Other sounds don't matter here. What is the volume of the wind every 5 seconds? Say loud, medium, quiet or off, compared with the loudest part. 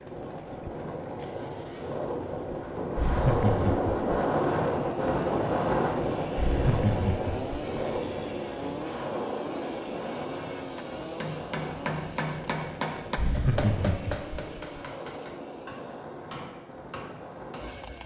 loud, loud, medium, quiet.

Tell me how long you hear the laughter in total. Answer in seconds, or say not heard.
4 s.